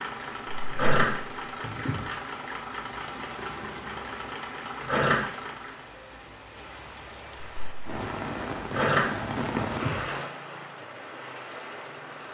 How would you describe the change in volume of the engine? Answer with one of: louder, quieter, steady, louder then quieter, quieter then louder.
steady.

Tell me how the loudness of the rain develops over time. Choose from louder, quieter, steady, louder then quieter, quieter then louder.
louder.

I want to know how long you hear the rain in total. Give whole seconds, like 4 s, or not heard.
12 s.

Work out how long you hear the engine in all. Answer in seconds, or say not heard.
6 s.